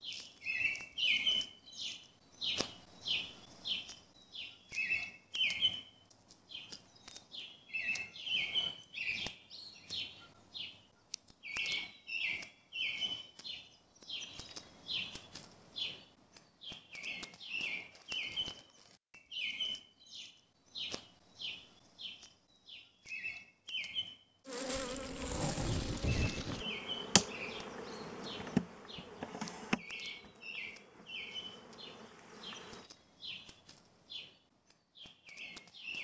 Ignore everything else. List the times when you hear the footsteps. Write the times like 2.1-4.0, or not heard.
not heard.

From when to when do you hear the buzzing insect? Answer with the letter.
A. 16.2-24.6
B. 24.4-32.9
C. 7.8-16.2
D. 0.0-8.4
B.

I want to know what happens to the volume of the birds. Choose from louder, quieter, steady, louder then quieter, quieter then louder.
quieter.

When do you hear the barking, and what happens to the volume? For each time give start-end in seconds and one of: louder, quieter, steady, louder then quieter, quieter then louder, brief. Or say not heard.
not heard.